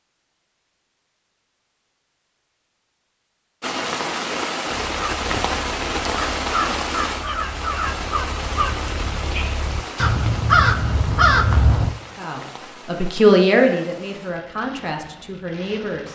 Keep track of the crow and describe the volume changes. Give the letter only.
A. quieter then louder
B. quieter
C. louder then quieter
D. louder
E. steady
D.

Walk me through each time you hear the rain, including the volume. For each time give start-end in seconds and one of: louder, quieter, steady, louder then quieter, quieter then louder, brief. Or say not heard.
3.6-16.1 quieter.